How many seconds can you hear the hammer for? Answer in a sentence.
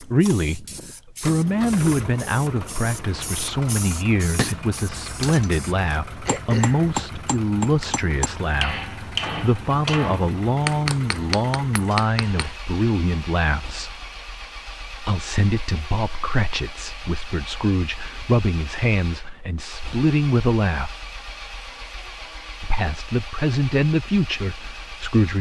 The hammer can be heard for 8 seconds in total.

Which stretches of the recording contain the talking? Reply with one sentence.
The talking can be heard from 0.0 to 13.9 s, from 15.0 to 20.9 s and from 22.6 to 25.3 s.